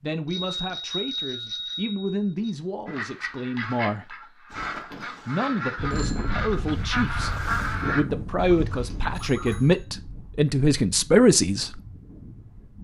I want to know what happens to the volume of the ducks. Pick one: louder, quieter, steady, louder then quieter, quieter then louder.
louder then quieter.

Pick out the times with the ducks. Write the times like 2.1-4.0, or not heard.
2.9-9.7.